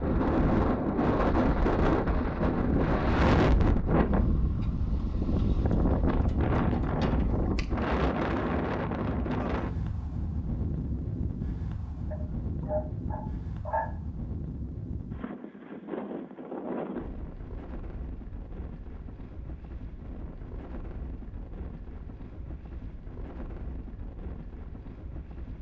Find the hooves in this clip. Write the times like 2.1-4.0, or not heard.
not heard.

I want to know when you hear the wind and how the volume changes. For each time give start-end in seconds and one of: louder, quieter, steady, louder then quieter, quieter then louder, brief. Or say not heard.
0.0-25.5 quieter.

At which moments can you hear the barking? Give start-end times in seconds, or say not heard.
12.1-13.9.